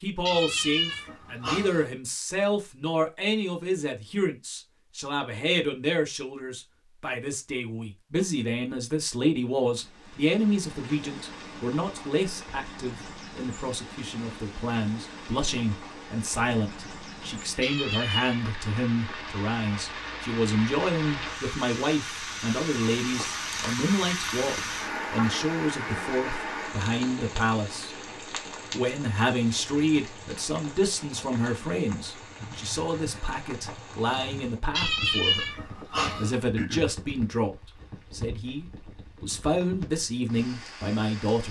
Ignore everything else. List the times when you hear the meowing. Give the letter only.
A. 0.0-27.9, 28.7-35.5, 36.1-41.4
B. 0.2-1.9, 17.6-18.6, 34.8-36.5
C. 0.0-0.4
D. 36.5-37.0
B.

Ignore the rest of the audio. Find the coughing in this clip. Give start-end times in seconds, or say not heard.
36.5-37.0.